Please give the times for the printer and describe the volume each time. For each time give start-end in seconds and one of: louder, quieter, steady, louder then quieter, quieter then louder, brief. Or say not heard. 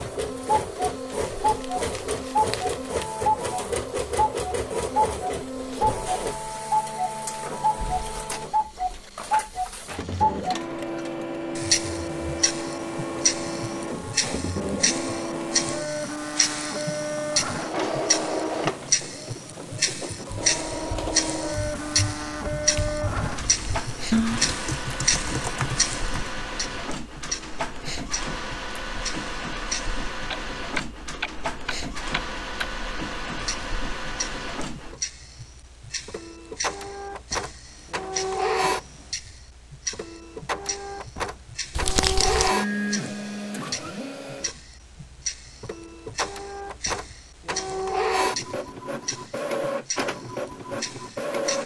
0.0-51.6 steady.